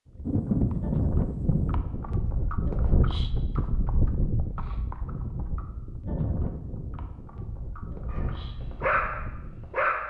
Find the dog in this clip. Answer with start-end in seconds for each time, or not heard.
8.1-10.0.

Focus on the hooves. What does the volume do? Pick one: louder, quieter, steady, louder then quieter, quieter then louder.
quieter.